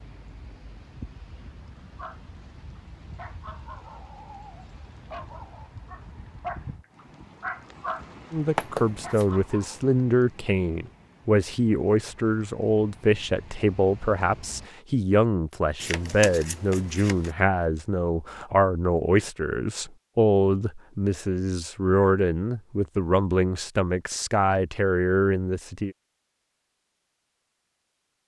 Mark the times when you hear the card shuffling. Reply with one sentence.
The card shuffling can be heard from 8.6 to 9.2 s and from 15.8 to 17.3 s.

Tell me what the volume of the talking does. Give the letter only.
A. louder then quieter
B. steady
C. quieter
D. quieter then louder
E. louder
B.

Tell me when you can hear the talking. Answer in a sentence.
You can hear the talking from 8.3 to 25.9 s.